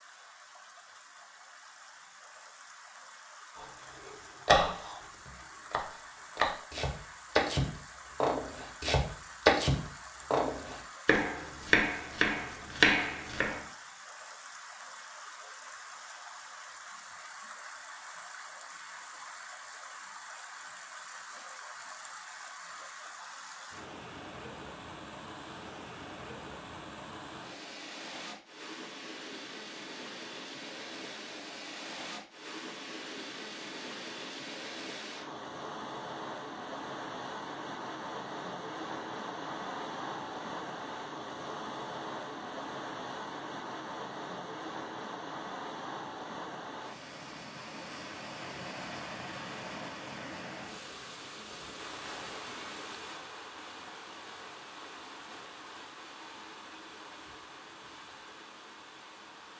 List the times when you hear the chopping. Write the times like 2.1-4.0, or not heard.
4.5-13.7.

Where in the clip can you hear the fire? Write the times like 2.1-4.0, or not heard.
not heard.